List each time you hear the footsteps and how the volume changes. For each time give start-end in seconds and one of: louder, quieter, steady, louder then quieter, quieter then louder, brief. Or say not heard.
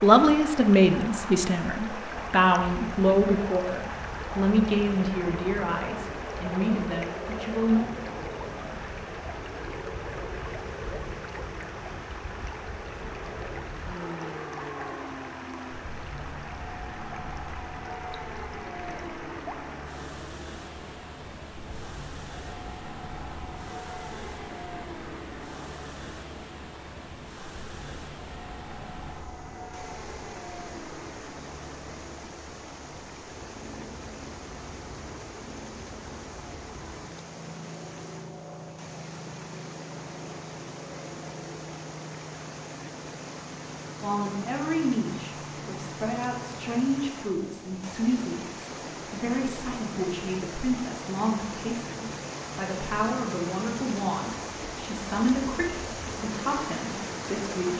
not heard.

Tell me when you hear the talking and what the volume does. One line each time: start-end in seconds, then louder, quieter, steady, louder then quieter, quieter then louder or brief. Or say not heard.
0.0-7.8 quieter
44.0-57.7 steady.